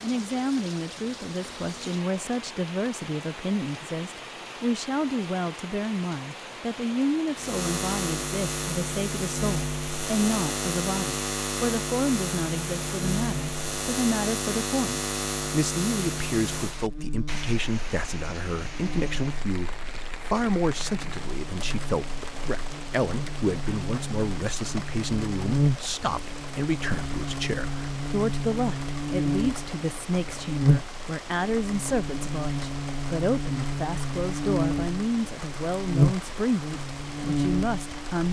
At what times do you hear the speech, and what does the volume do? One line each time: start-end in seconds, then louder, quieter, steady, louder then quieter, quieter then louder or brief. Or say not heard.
0.0-38.2 steady.